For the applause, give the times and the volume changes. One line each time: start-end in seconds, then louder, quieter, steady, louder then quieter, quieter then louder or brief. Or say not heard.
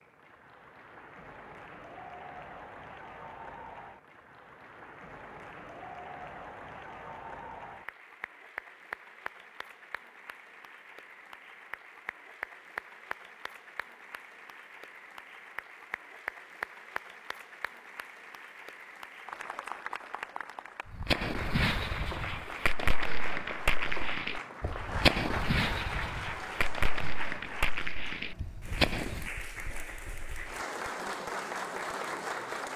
0.0-32.7 louder.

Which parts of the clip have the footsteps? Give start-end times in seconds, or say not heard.
not heard.